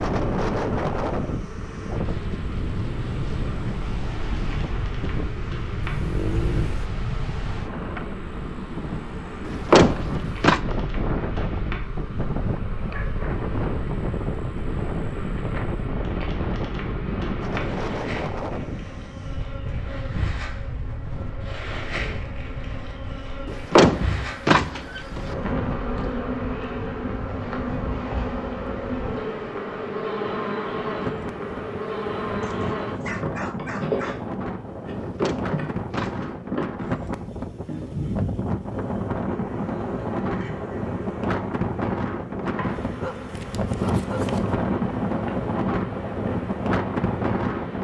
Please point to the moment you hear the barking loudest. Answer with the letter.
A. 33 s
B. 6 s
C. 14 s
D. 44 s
B.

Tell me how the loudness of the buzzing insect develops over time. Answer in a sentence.
The loudness of the buzzing insect goes up, then down.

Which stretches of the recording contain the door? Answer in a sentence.
You can hear the door from 9.4 to 10.6 s, from 23.4 to 25.4 s and from 35.0 to 36.3 s.